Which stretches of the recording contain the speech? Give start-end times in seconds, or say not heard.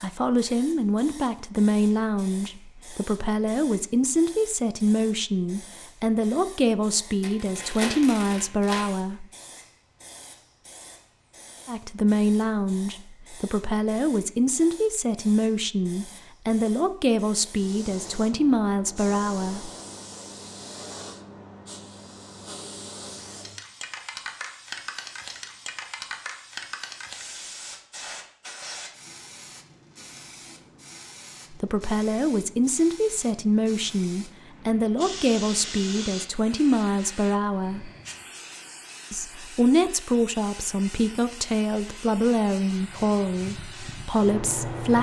0.0-9.2, 11.7-19.7, 31.5-37.9, 39.1-44.9.